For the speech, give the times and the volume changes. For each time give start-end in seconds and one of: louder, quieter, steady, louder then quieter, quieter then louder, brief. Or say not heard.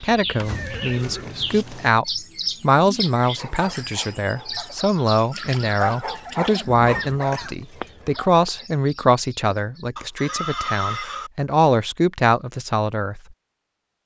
0.0-13.2 steady.